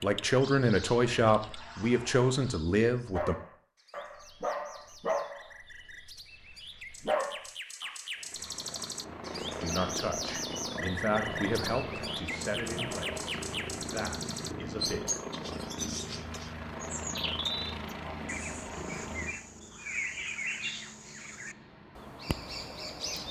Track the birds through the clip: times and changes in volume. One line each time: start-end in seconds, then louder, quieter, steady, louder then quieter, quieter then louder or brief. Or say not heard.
0.0-23.2 louder.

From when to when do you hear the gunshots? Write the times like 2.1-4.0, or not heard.
not heard.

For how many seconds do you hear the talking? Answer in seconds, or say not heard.
9 s.